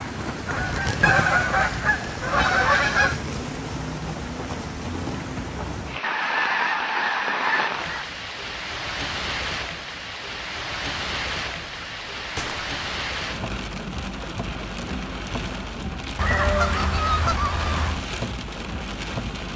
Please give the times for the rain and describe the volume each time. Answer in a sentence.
The rain can be heard from 0.0 to 19.5 s, at a steady volume.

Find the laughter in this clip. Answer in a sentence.
You can't hear the laughter here.